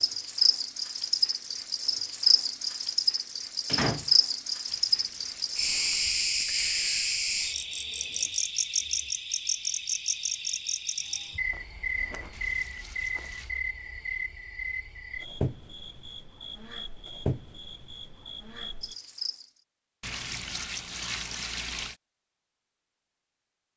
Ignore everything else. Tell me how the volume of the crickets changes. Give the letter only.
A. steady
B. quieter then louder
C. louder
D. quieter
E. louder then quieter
D.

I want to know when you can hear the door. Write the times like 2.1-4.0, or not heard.
3.6-4.1.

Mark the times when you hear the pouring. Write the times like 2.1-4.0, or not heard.
4.7-6.3, 12.3-13.6, 20.0-21.9.